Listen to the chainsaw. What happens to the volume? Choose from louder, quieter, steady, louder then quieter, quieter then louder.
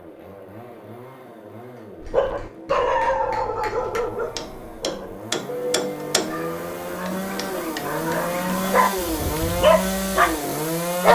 louder.